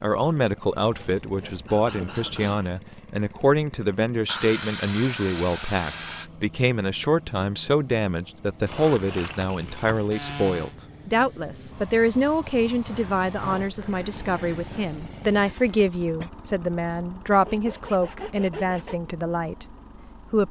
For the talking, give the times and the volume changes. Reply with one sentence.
You can hear the talking from 0.0 to 20.4 s, at a steady volume.